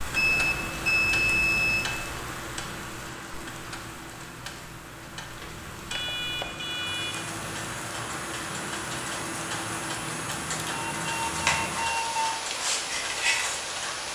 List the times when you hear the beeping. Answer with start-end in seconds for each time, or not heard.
0.1-1.9, 5.4-7.2, 10.6-12.3.